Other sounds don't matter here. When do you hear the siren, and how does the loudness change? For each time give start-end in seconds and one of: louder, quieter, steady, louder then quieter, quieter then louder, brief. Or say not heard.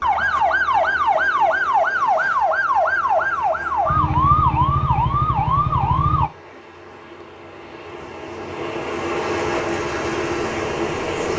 0.0-6.3 steady
9.4-11.3 brief.